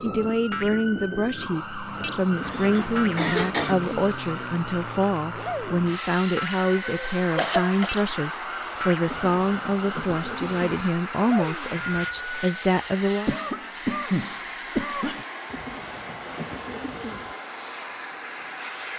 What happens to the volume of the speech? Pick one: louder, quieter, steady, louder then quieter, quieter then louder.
steady.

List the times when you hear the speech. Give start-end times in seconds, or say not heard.
0.0-13.3.